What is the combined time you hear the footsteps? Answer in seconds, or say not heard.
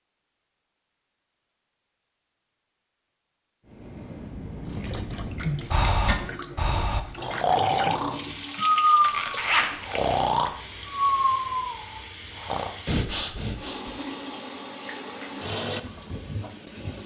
not heard.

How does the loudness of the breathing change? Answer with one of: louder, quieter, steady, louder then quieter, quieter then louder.
louder then quieter.